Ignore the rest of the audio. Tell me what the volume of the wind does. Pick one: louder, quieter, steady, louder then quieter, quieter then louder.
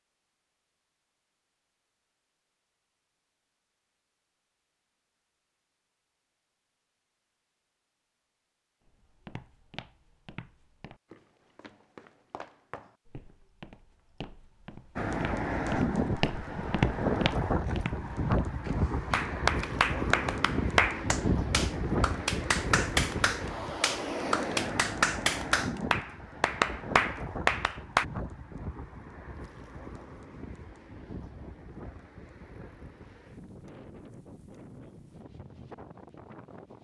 quieter.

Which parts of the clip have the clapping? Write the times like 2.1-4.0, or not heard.
19.1-28.1.